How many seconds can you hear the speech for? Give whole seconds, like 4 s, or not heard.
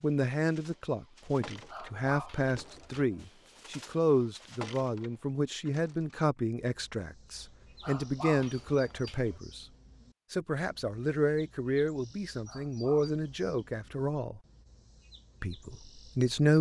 15 s.